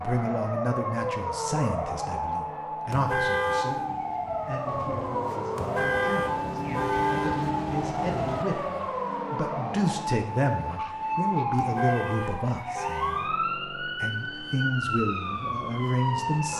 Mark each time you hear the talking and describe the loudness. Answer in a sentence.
You can hear the talking from 0.0 to 16.5 s, getting quieter then louder.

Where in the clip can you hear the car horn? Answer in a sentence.
You can hear the car horn from 2.9 to 3.9 s, from 5.5 to 7.4 s and from 11.6 to 13.3 s.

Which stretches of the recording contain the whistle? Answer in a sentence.
You can't hear the whistle here.